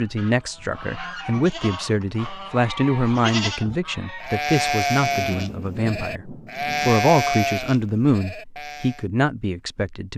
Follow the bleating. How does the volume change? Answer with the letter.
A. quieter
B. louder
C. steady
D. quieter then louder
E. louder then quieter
B.